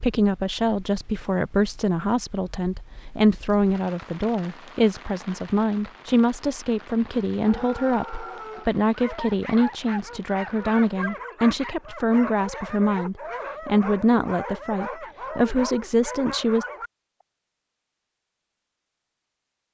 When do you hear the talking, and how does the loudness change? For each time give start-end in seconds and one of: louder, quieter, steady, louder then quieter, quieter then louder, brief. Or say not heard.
0.0-16.6 steady.